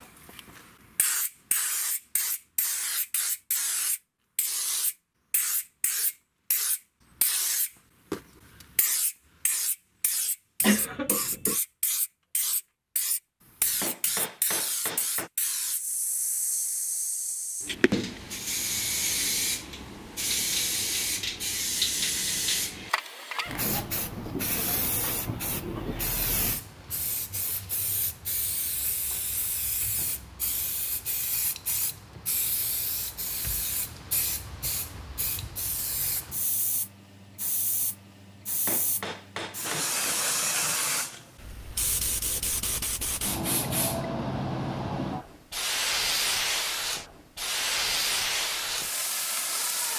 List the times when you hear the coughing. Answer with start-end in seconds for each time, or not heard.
10.6-11.6.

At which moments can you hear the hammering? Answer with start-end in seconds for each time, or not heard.
13.8-15.3, 38.6-40.2.